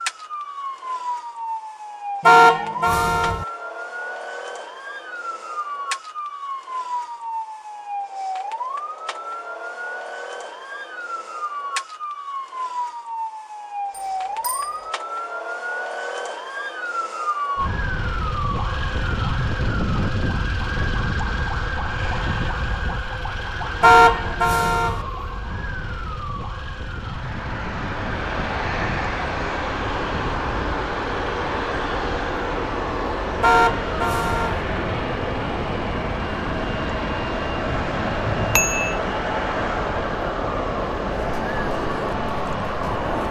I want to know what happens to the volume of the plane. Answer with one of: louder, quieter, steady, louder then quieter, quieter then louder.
steady.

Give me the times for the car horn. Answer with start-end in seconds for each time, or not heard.
2.2-3.5, 23.8-25.1, 33.4-34.6.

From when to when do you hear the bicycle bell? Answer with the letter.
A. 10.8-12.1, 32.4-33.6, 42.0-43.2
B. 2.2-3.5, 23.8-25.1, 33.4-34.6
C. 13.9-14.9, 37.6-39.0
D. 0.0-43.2
C.